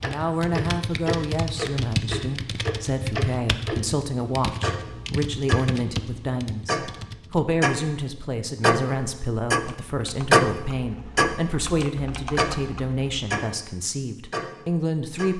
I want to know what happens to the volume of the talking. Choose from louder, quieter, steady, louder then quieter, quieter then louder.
steady.